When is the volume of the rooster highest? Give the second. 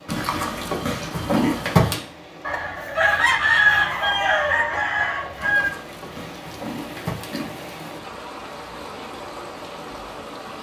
4 s.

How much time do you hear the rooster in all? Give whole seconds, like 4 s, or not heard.
3 s.